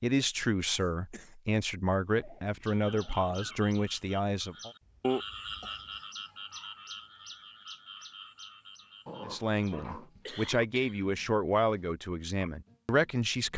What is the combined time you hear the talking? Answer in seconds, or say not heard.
9 s.